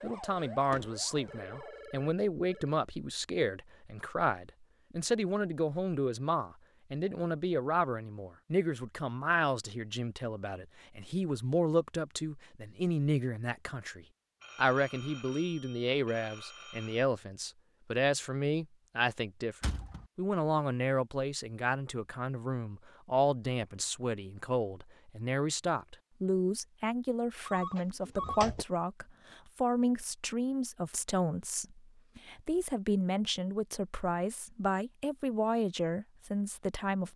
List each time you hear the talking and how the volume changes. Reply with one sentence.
You can hear the talking from 0.0 to 37.1 s, at a steady volume.